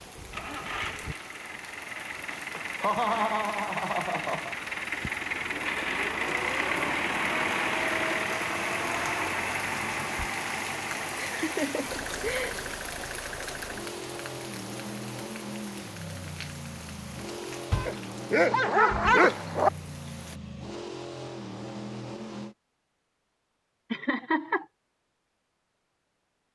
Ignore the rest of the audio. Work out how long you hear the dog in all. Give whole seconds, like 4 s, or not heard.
2 s.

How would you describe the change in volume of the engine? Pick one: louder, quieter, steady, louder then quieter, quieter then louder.
louder then quieter.